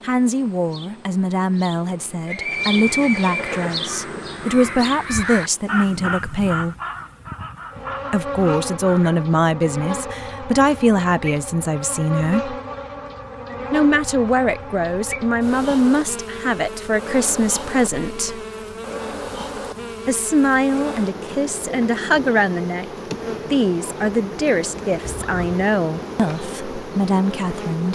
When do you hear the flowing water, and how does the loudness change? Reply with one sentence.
The flowing water can't be heard in this clip.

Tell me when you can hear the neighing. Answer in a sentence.
The neighing can be heard from 2.2 to 3.9 s and from 25.0 to 25.4 s.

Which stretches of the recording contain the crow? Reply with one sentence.
The crow can be heard from 3.5 to 9.2 s.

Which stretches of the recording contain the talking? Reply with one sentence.
The talking can be heard from 0.0 to 6.8 s, from 8.1 to 12.6 s, from 13.7 to 18.4 s, from 20.1 to 22.9 s and from 23.4 to 27.9 s.